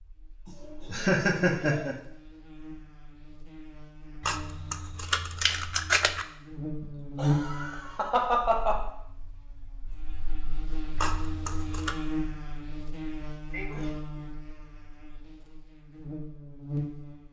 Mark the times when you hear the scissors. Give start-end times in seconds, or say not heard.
4.2-6.2, 10.9-11.9.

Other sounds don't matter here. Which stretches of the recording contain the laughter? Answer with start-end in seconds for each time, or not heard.
0.5-1.9, 6.8-8.8, 13.5-14.0.